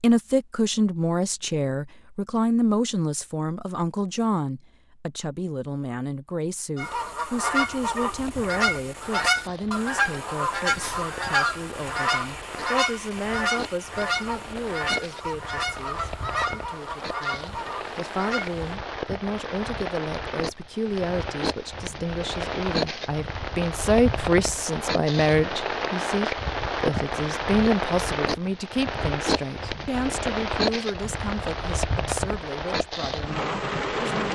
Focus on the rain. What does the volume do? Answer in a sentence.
The volume of the rain goes up.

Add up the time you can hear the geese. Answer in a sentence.
You can hear the geese for 12 seconds altogether.